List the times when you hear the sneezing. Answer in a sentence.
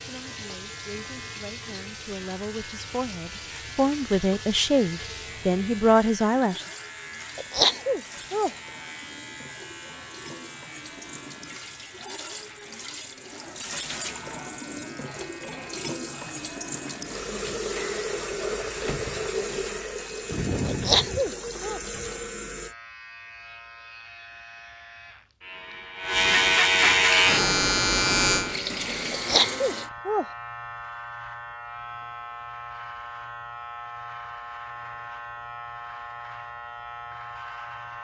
The sneezing can be heard from 7.3 to 8.5 s, from 20.6 to 21.8 s and from 29.1 to 30.2 s.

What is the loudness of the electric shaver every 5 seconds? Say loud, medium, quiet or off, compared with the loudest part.
quiet, quiet, quiet, quiet, quiet, loud, quiet, quiet.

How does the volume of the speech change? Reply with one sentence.
The loudness of the speech goes up.